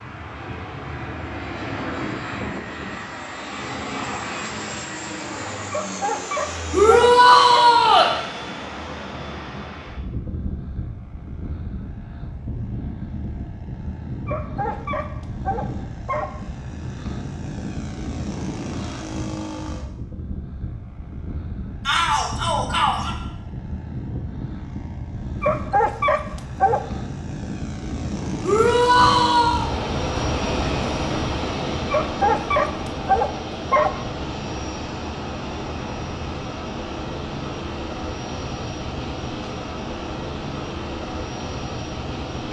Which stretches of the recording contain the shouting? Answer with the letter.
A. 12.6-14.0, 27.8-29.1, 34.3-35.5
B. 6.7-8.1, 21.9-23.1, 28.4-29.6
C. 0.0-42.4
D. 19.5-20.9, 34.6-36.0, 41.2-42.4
B.